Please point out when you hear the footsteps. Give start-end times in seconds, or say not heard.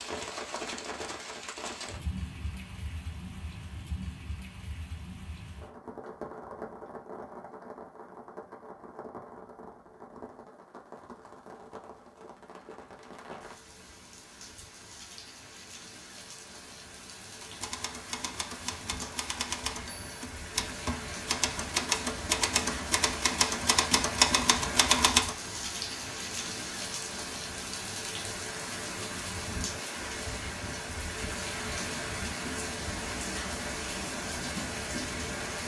not heard.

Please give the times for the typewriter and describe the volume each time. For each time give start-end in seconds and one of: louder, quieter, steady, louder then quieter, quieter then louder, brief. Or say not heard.
17.4-25.4 louder.